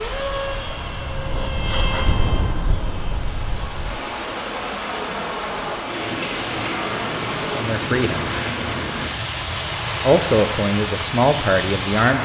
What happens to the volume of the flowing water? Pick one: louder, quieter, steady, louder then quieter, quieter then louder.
louder.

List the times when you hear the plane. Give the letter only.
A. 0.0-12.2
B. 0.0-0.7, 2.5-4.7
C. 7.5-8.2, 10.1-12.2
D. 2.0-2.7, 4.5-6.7
A.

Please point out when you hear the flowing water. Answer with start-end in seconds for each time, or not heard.
0.0-12.2.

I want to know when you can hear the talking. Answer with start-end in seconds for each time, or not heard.
7.5-8.2, 10.1-12.2.